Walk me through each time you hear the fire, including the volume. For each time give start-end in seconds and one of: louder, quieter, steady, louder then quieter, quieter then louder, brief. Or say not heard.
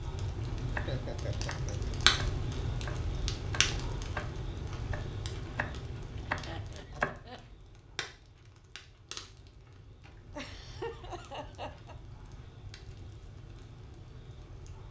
0.0-14.8 quieter.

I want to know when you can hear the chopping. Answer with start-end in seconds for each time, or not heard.
0.7-7.2.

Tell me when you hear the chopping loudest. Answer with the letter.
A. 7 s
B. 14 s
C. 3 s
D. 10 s
A.